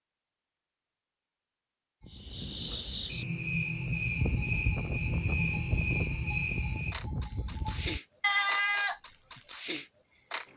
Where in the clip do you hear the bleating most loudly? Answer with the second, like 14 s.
8 s.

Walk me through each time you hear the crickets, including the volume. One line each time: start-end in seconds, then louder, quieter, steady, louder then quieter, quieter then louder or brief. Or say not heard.
2.1-10.5 steady.